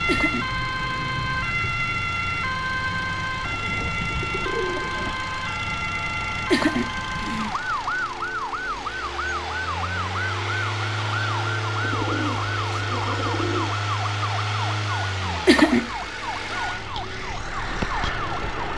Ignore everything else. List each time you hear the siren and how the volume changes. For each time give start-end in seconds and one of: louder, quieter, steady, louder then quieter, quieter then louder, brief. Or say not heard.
0.0-18.7 quieter.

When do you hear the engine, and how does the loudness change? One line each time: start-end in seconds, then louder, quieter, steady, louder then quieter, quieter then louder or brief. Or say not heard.
0.0-18.7 louder.